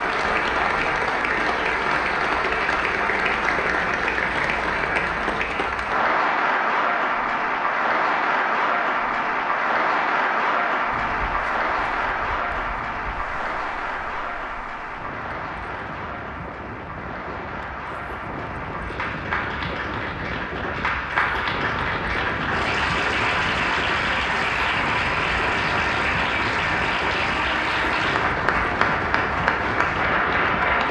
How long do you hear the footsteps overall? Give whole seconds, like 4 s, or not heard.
not heard.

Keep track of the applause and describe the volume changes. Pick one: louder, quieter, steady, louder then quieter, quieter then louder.
quieter then louder.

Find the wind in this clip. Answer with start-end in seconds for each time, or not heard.
10.9-30.8.